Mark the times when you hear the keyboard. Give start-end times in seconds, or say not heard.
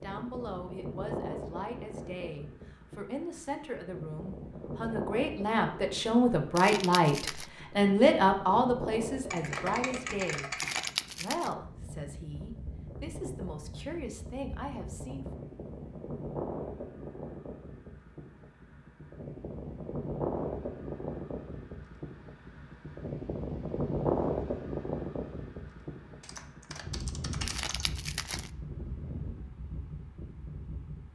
9.3-10.9, 26.2-27.9.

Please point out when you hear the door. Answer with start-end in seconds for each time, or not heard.
not heard.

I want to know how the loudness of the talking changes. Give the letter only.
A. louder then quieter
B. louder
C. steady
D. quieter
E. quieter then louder
A.